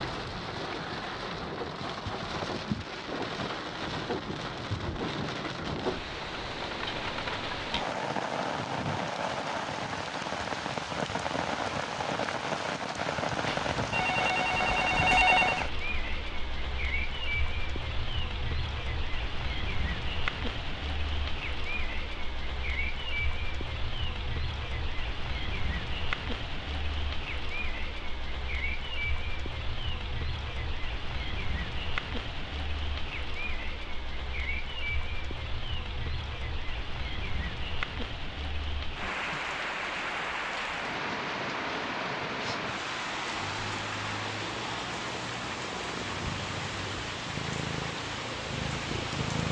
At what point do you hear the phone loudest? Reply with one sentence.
The volume of the phone peaks at 15 seconds.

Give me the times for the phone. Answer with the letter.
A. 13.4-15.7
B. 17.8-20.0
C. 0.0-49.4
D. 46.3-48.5
A.